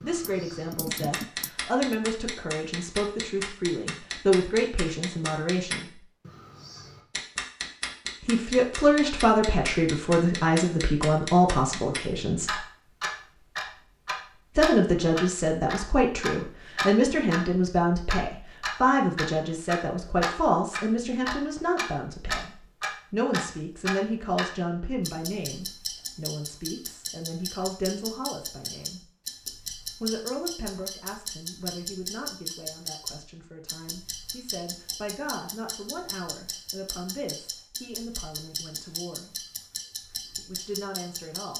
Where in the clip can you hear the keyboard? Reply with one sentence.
You can hear the keyboard from 0.2 to 2.0 s.